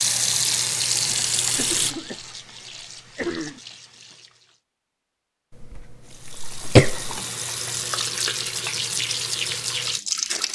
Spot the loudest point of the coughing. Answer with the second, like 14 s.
7 s.